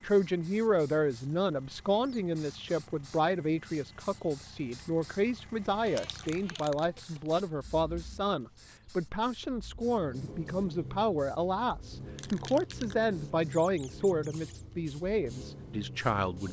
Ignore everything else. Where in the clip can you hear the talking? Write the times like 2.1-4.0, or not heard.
0.0-16.4.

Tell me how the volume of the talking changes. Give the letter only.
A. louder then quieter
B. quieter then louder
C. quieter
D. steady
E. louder
D.